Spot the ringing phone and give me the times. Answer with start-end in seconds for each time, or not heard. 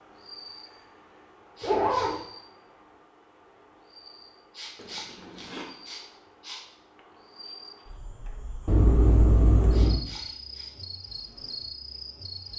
not heard.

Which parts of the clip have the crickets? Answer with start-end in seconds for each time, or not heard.
0.0-12.5.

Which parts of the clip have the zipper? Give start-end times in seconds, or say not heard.
1.6-2.2, 4.8-5.7, 8.7-10.0.